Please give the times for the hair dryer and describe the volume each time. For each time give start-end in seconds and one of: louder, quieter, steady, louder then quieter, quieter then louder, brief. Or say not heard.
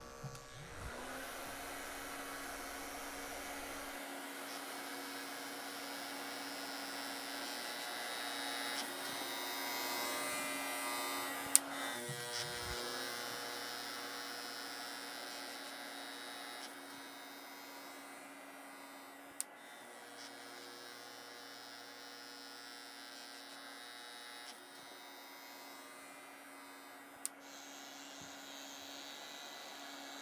0.0-30.1 quieter.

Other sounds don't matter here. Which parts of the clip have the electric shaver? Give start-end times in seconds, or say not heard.
0.0-30.1.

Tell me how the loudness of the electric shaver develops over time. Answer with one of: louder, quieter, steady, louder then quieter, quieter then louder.
louder then quieter.